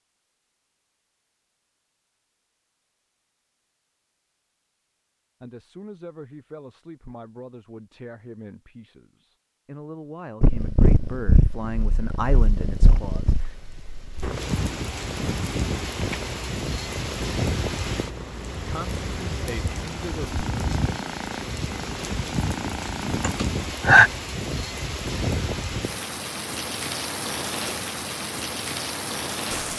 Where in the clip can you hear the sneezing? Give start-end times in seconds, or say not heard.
23.2-24.1.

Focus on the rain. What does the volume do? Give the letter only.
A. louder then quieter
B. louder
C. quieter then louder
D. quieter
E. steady
E.